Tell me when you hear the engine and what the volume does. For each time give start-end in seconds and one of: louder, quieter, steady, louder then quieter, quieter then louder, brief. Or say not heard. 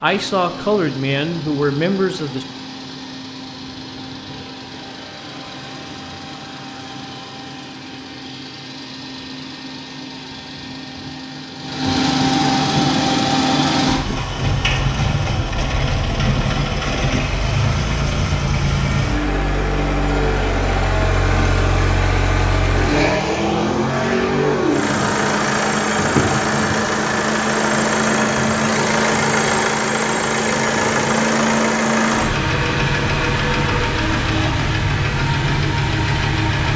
0.0-36.7 louder.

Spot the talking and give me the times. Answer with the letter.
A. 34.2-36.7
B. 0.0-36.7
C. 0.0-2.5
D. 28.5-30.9
C.